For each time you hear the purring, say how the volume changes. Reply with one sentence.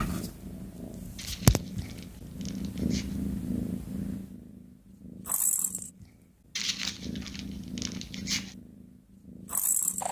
You can hear the purring from 0.0 to 10.0 s, getting quieter.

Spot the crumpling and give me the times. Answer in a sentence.
The crumpling can be heard from 1.1 to 3.2 s and from 6.5 to 8.6 s.